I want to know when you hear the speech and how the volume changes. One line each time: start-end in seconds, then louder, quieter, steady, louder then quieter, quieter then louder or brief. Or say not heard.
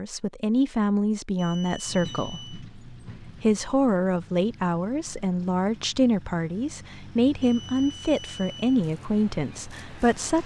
0.0-10.4 steady.